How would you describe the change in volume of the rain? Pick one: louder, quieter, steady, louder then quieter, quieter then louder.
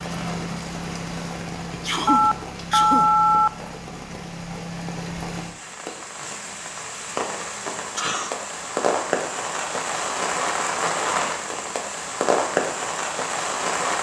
louder.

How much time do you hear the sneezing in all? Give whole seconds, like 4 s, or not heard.
2 s.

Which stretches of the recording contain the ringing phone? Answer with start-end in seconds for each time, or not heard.
2.0-3.5.